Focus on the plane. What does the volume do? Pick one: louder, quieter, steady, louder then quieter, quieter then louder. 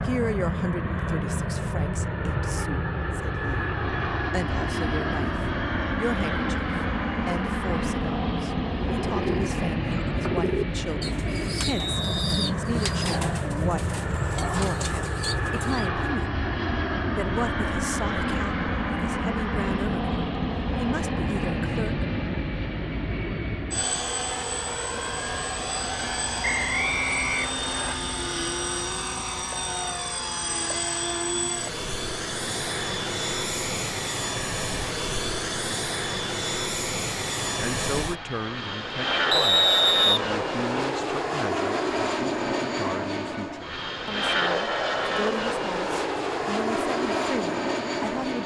steady.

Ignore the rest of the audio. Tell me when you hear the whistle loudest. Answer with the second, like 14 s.
40 s.